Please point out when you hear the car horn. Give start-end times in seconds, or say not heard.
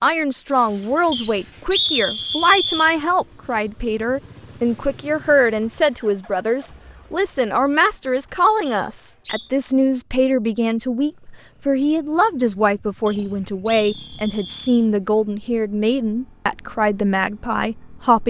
not heard.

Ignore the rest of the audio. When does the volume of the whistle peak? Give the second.
2 s.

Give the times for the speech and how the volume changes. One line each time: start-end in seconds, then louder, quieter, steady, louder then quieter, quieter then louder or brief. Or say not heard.
0.0-18.2 steady.